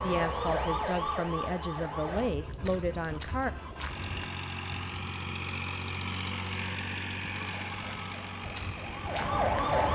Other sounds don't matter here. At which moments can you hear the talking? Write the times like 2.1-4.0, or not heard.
0.0-3.5.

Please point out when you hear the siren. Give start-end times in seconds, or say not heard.
0.0-2.3, 7.3-9.9.